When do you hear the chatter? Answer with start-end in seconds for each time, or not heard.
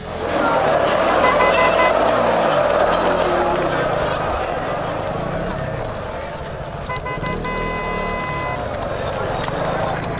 0.0-10.1.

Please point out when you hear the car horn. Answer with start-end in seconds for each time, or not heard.
1.2-1.9, 6.8-8.6.